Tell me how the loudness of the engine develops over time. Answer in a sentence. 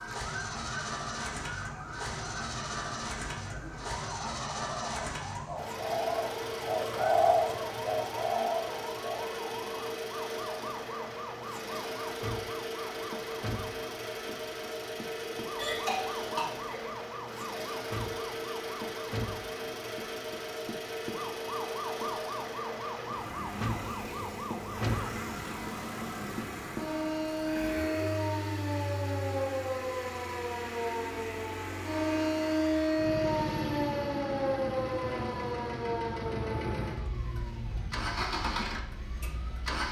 The volume of the engine stays about the same.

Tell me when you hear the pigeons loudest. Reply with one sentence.
The volume of the pigeons peaks at 7 seconds.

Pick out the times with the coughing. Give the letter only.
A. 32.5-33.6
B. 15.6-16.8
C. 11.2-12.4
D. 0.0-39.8
B.